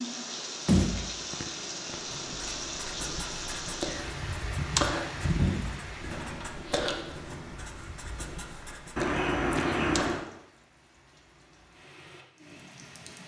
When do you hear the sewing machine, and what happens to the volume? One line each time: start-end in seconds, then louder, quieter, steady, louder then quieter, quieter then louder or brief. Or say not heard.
not heard.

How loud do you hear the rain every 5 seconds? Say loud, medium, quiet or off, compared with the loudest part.
loud, loud, quiet.